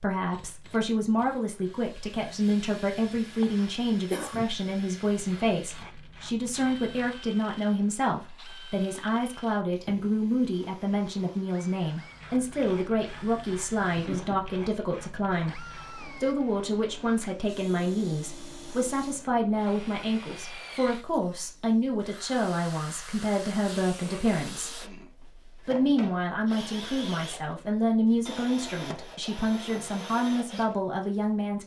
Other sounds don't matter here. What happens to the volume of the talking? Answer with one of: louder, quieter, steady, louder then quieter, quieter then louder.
steady.